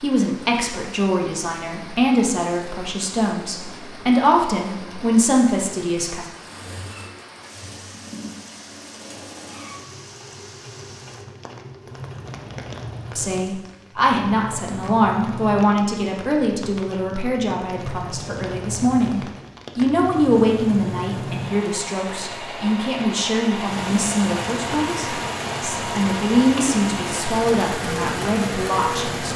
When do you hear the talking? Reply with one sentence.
The talking can be heard from 0.0 to 6.2 s and from 13.2 to 29.3 s.